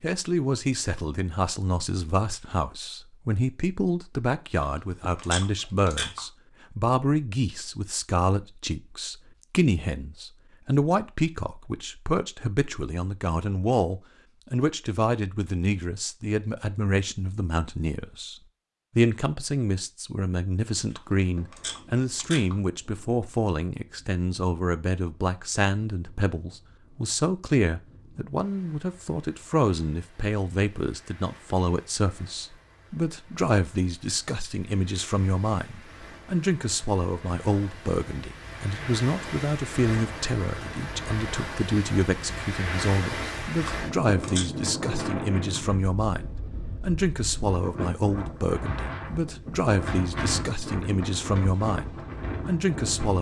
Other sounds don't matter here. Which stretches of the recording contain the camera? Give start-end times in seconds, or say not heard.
4.5-6.2, 20.9-22.6, 43.6-44.5.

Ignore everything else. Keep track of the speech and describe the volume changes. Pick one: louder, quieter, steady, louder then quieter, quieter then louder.
steady.